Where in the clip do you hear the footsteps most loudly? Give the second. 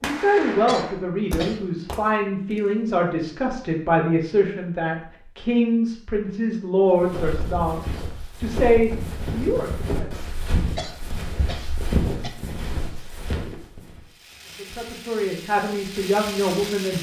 12 s.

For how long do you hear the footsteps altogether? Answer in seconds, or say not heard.
7 s.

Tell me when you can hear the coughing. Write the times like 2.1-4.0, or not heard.
0.7-1.8, 10.8-12.3.